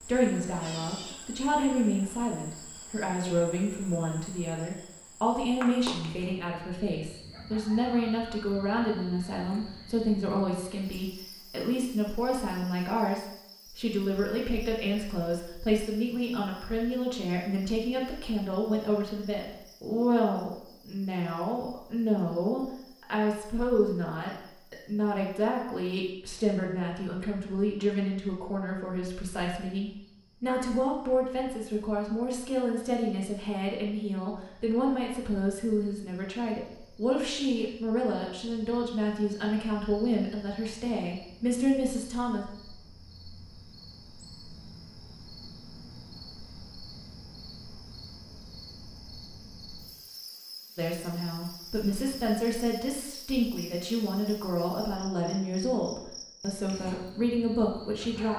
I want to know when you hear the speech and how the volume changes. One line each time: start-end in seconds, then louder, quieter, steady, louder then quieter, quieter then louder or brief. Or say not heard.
0.0-42.5 steady
50.8-58.3 steady.